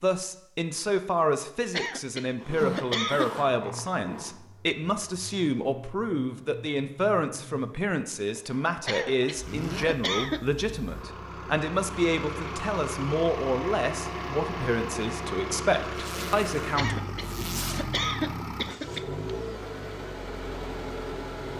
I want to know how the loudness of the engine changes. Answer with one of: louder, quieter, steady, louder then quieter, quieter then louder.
louder.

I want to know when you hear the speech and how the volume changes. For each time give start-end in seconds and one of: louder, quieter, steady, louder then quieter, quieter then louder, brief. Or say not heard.
0.0-17.1 steady.